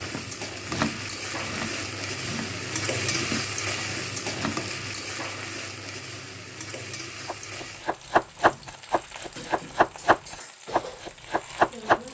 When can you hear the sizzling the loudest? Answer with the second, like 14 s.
3 s.